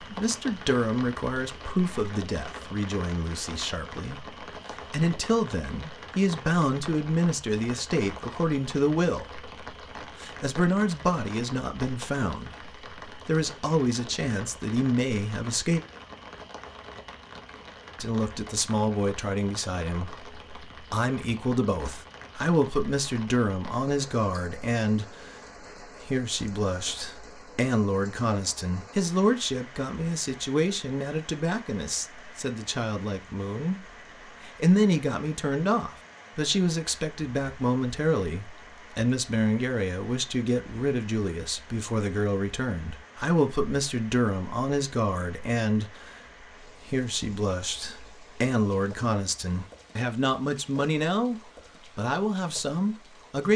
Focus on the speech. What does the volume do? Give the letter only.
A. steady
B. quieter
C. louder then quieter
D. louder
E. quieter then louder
A.